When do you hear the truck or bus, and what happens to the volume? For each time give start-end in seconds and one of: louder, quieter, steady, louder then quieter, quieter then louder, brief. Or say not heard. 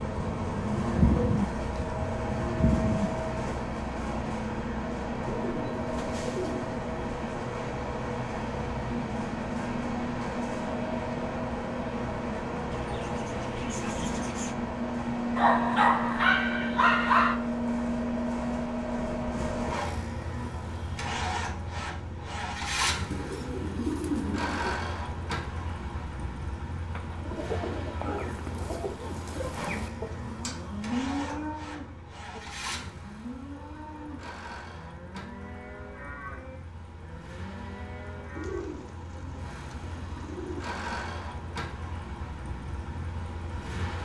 0.0-44.0 quieter.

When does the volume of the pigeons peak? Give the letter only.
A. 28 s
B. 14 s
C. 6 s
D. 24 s
D.